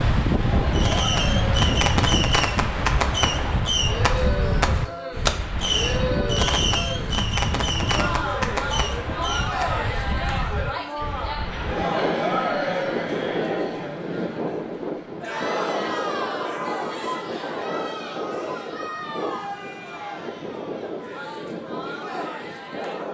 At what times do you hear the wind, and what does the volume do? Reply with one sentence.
The wind can be heard from 0.0 to 23.0 s, getting quieter.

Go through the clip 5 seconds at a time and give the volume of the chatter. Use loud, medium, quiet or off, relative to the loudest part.
loud, loud, loud, loud, medium.